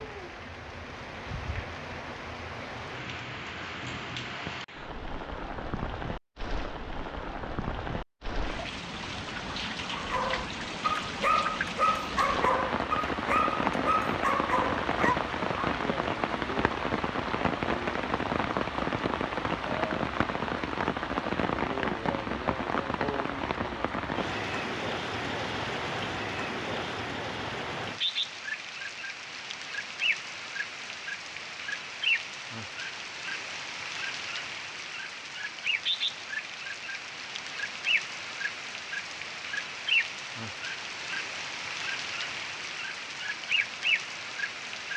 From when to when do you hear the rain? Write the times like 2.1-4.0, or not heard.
0.0-44.9.